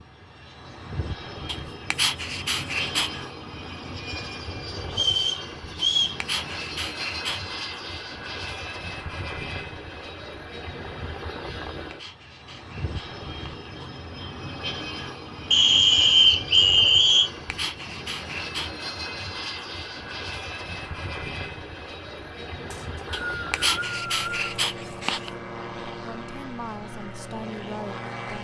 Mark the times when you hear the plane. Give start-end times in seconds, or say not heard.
0.0-28.3.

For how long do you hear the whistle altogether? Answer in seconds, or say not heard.
5 s.